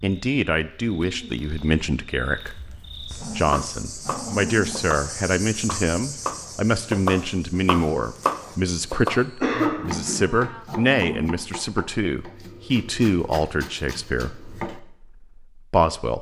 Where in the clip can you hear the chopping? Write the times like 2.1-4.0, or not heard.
3.4-14.8.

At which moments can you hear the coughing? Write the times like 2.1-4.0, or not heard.
9.3-10.4.